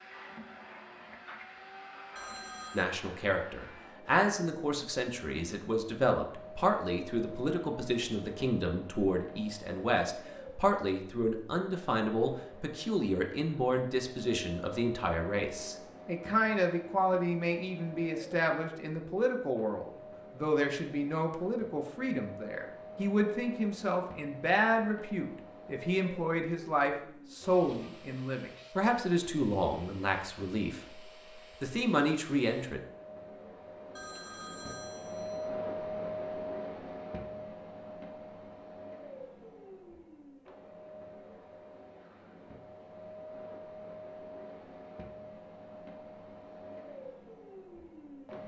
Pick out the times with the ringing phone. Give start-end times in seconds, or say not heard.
2.1-2.9, 34.0-35.5.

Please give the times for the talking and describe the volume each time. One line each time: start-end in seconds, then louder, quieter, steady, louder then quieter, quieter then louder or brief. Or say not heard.
2.7-30.8 steady
31.6-32.8 brief.